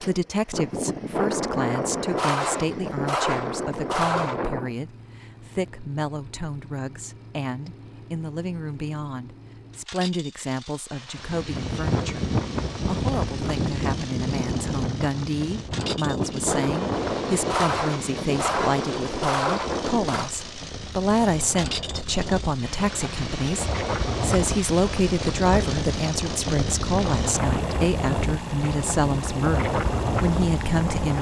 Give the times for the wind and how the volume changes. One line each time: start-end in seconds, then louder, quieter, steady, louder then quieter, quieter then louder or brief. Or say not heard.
11.2-31.1 quieter then louder.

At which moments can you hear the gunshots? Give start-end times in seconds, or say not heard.
0.5-4.8, 15.8-20.3.